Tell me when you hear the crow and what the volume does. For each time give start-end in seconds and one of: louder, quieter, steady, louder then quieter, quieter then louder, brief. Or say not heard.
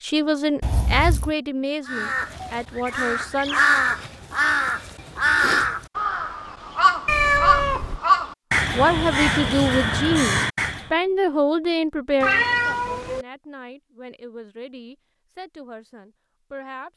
1.9-10.9 steady.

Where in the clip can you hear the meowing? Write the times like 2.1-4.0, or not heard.
0.6-1.4, 7.0-8.0, 12.2-13.2.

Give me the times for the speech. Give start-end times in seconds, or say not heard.
0.0-3.6, 8.7-16.9.